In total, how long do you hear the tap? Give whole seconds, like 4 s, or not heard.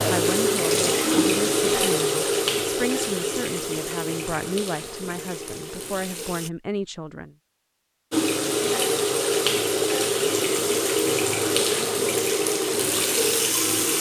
12 s.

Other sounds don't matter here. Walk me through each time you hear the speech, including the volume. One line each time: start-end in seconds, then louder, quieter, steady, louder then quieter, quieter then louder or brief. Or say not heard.
0.1-7.3 steady.